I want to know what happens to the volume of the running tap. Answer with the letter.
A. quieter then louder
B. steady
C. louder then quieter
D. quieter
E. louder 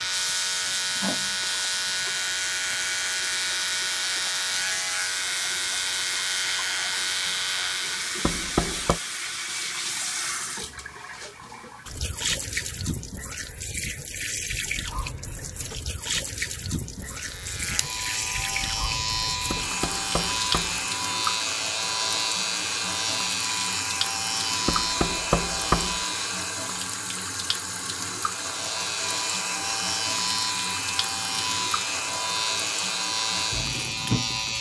B.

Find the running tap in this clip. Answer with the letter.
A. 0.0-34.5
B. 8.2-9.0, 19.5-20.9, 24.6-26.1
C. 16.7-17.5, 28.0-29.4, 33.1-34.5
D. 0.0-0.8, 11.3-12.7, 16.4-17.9
A.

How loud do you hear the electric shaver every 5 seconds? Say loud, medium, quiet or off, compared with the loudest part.
loud, loud, off, loud, loud, loud, loud.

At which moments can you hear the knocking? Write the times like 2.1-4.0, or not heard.
8.2-9.0, 19.5-20.9, 24.6-26.1.